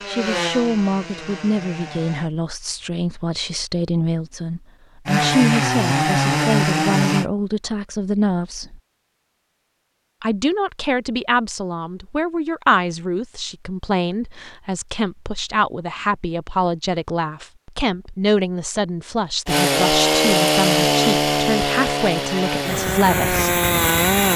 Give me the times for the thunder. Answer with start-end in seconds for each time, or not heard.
not heard.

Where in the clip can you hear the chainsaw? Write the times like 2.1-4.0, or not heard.
0.0-2.3, 5.0-7.2, 19.4-24.3.